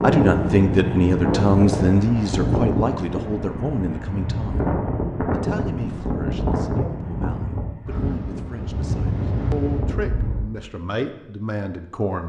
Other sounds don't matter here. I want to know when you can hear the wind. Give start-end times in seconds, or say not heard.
0.0-10.5.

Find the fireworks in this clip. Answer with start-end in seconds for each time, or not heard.
not heard.